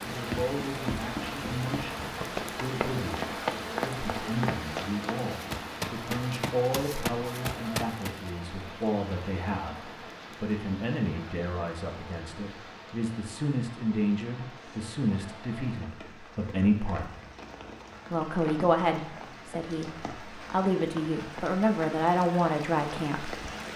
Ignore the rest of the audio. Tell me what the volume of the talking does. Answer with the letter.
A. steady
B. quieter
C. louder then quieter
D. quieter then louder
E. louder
E.